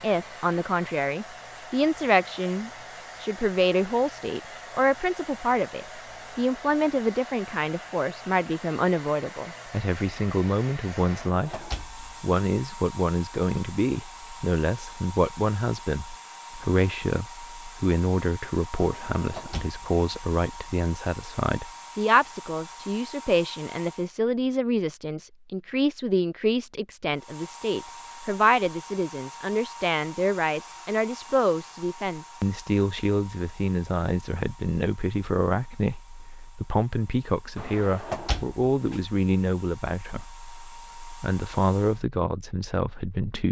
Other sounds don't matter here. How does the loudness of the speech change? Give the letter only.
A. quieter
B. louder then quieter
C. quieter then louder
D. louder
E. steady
E.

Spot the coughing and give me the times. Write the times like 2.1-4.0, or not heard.
not heard.